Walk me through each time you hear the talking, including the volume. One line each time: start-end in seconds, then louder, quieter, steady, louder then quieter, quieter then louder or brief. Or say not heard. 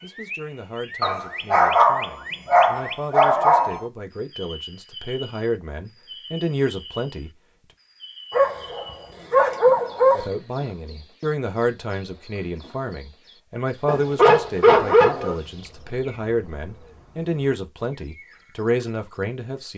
0.0-7.3 louder
10.1-19.7 steady.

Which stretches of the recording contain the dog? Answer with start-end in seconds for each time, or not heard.
1.0-3.8, 8.3-10.3, 13.8-15.3.